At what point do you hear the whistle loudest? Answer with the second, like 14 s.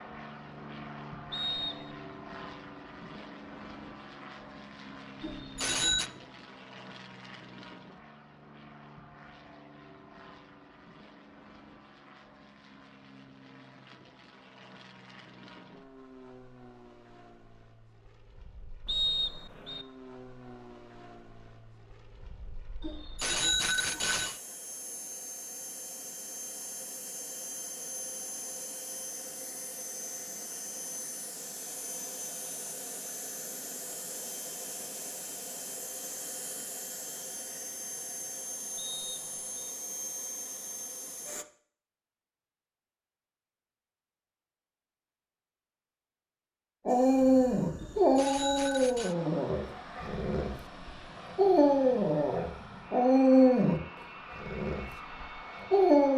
19 s.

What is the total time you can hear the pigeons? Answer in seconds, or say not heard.
not heard.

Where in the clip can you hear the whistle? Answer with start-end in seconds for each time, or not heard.
1.3-1.9, 18.9-19.9, 38.8-39.7.